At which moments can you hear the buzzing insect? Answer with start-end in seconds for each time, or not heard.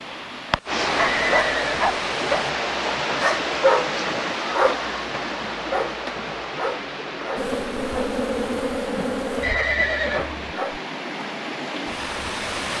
7.3-10.3.